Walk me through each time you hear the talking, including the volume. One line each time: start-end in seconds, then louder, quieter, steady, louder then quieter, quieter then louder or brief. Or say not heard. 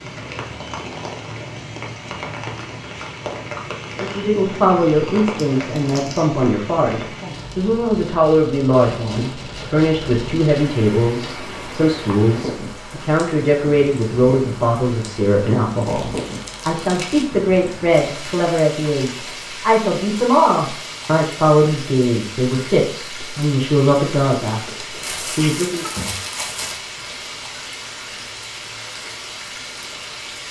4.0-24.6 steady
25.4-25.9 brief.